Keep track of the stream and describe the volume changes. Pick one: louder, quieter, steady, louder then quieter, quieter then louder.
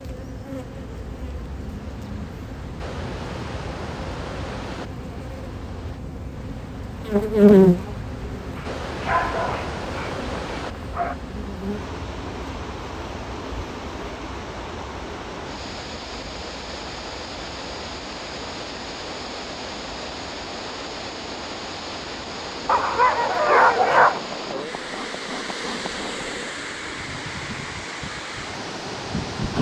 louder.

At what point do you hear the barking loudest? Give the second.
24 s.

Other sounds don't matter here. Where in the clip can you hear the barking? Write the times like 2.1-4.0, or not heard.
8.6-11.2, 22.6-24.2.